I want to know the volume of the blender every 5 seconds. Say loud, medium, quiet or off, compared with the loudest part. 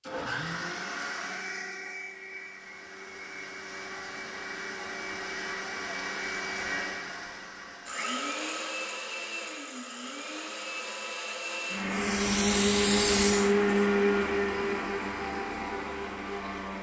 medium, medium, loud, medium.